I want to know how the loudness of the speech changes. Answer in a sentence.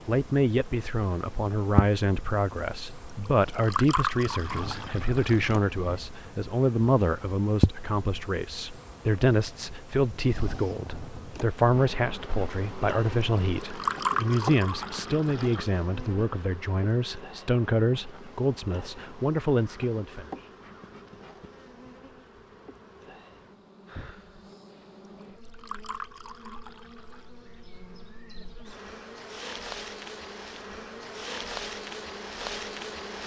The loudness of the speech stays about the same.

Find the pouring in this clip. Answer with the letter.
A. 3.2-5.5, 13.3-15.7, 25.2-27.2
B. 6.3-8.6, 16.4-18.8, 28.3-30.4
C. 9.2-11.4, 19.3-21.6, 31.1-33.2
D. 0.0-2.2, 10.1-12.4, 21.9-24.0
A.